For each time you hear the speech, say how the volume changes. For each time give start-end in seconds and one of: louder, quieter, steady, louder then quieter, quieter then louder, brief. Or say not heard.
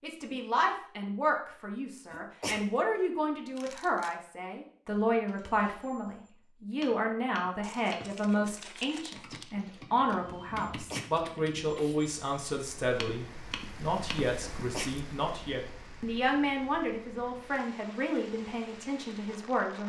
0.0-19.8 steady.